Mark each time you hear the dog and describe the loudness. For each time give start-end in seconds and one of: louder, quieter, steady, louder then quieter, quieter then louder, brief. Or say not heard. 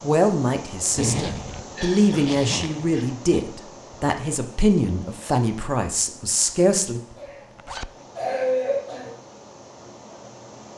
not heard.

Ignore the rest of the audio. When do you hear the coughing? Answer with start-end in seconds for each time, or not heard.
1.6-3.1, 7.2-9.2.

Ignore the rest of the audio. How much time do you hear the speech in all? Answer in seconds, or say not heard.
7 s.